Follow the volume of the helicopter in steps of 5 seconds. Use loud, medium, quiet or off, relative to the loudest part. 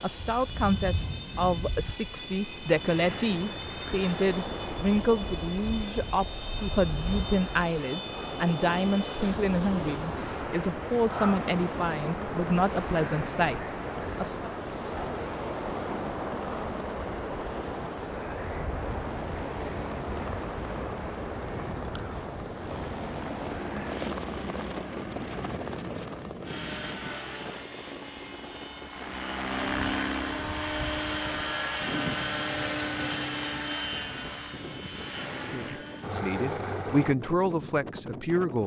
quiet, quiet, quiet, quiet, medium, loud, loud, medium.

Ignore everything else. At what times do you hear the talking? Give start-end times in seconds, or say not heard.
0.0-14.6, 35.4-38.6.